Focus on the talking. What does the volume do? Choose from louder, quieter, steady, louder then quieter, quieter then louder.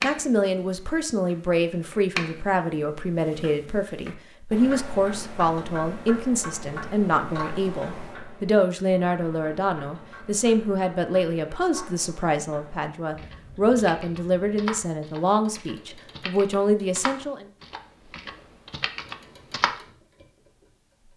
steady.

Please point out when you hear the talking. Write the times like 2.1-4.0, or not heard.
0.0-17.4.